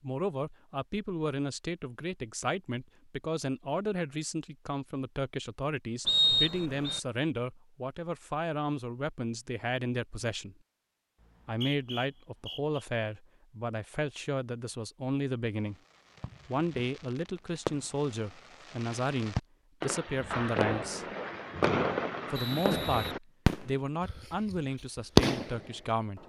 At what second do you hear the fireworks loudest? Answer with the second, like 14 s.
25 s.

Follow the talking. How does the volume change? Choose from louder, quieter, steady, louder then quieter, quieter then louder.
steady.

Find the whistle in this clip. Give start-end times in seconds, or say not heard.
6.0-7.0, 11.2-12.8, 22.4-23.9.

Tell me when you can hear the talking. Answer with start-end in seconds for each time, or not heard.
0.0-10.6, 11.4-15.8, 16.4-21.1, 22.3-26.2.